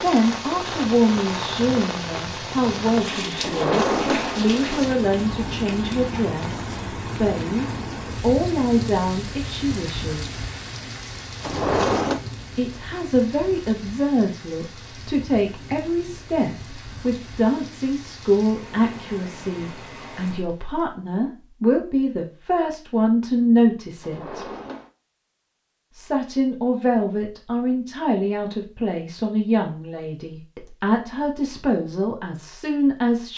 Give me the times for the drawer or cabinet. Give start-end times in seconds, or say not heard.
3.4-4.8, 11.4-12.2, 24.0-24.9.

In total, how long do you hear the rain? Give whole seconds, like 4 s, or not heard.
21 s.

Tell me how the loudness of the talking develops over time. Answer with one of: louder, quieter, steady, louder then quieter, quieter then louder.
steady.